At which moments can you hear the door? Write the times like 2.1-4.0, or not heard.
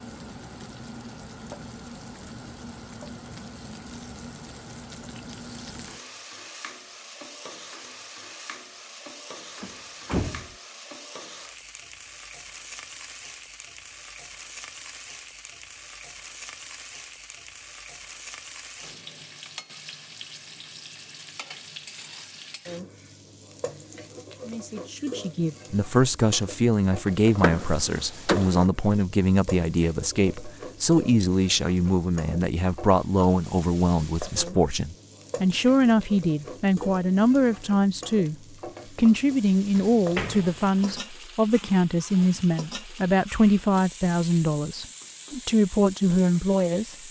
9.6-10.6, 27.2-28.6, 39.8-41.0.